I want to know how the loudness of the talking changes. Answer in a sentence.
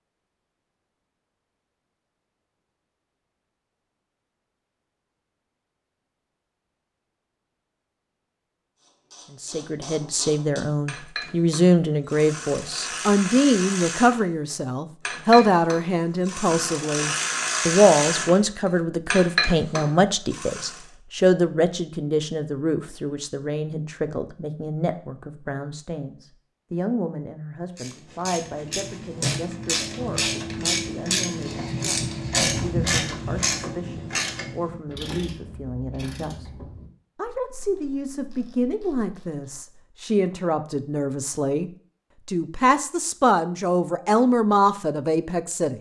The volume of the talking goes down, then up.